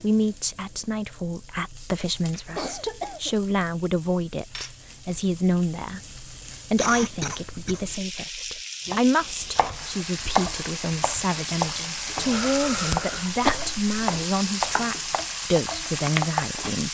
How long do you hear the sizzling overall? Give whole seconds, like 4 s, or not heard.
17 s.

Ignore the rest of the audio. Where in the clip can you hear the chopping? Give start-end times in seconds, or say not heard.
8.8-16.6.